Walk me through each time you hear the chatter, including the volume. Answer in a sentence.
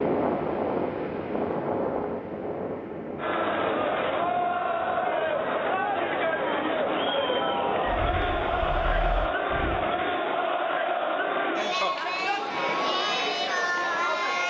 You can hear the chatter from 3.1 to 14.4 s, at a steady volume.